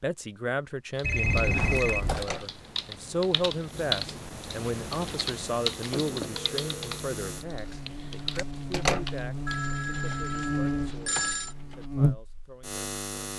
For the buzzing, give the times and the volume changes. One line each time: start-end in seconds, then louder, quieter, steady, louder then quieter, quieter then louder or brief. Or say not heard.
3.6-13.3 louder.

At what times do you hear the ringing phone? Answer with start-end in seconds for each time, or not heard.
1.0-2.3, 5.9-7.0, 9.4-11.6.